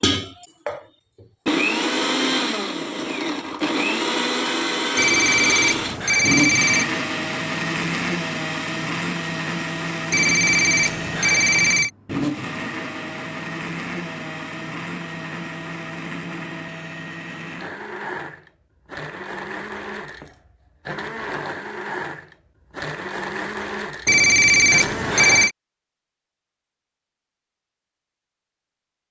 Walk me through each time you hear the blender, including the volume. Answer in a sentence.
The blender can be heard from 0.0 to 25.5 s, getting quieter.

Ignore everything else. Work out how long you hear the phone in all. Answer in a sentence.
The phone can be heard for 5 seconds in total.